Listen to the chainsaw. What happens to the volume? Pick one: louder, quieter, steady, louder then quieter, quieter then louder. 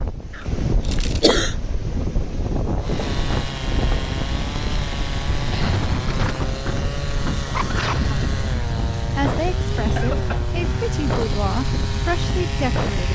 steady.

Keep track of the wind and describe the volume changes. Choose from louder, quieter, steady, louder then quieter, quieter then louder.
steady.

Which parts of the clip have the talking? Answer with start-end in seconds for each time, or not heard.
7.9-13.1.